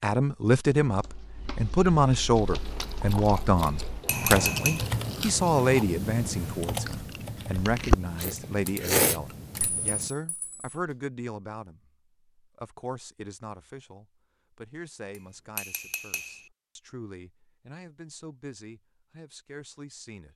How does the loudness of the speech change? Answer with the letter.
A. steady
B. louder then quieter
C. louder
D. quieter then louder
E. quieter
E.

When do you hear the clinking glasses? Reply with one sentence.
The clinking glasses can be heard from 3.6 to 4.8 s, from 9.6 to 10.7 s and from 15.1 to 16.5 s.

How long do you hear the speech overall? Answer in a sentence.
The speech can be heard for 20 seconds in total.